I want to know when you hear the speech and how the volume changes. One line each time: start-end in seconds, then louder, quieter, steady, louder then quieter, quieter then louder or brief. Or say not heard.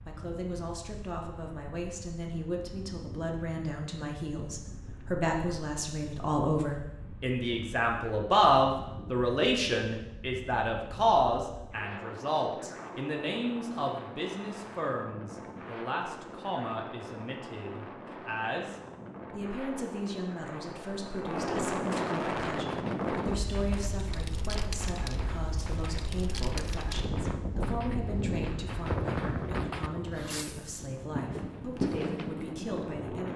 0.1-33.3 louder then quieter.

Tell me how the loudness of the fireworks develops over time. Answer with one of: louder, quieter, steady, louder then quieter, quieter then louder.
louder.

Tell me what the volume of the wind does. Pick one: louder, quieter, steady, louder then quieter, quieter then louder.
louder.